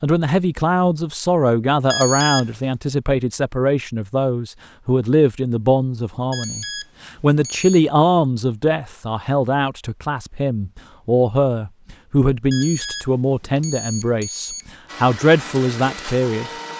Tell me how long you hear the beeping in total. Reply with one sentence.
You can hear the beeping for 4 seconds altogether.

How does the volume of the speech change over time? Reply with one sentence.
The loudness of the speech stays about the same.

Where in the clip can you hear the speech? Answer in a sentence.
The speech can be heard from 0.0 to 16.5 s.